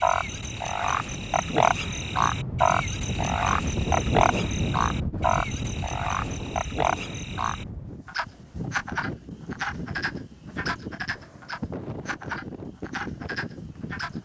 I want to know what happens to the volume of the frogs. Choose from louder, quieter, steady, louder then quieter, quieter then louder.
quieter.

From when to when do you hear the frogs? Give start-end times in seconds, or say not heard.
0.0-14.2.